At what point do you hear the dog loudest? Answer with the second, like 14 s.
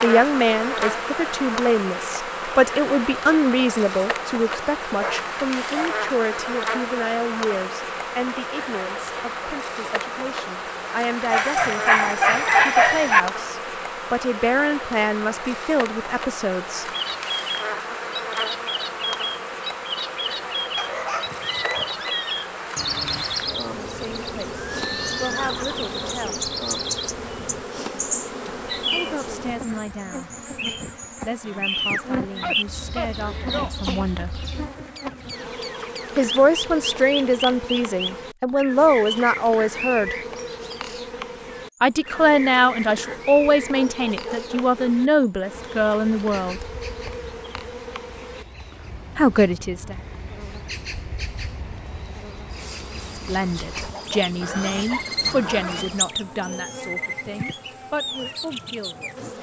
13 s.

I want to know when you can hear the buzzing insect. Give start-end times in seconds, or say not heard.
0.0-59.3.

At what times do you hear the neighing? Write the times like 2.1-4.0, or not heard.
24.6-25.9, 54.4-56.0.